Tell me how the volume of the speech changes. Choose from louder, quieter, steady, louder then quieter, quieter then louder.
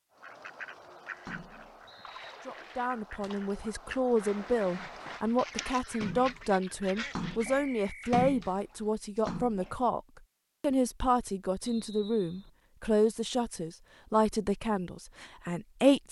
steady.